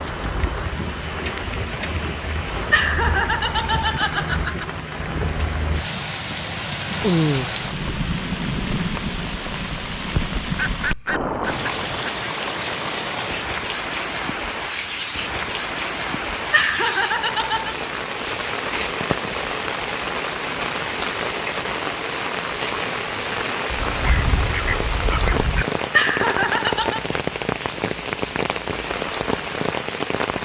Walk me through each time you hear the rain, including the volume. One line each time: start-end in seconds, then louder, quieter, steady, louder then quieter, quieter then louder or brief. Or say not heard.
0.0-30.3 steady.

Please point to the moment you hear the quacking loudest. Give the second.
7 s.